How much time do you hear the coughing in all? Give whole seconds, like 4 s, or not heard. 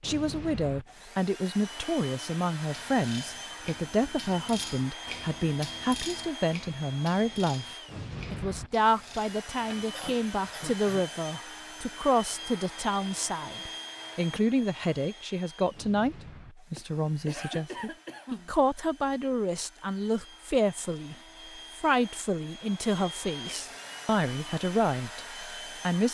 3 s.